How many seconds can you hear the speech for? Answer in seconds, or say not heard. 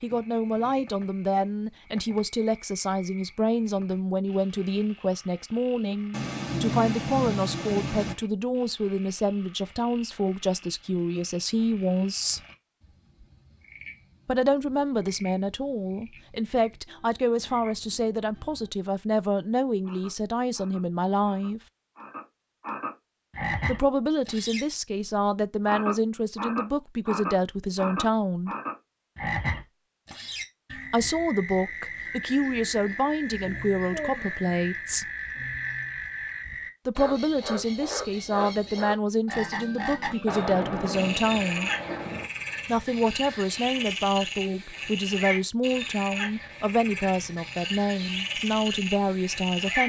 41 s.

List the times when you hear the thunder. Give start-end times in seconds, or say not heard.
6.1-8.2, 40.2-42.3.